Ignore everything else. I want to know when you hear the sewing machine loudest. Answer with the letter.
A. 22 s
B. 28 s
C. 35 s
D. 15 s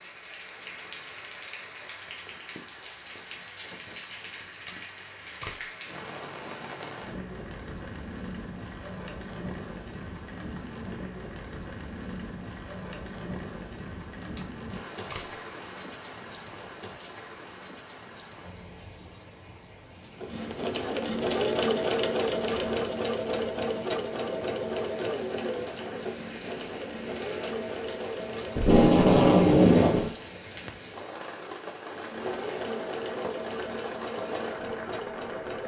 A.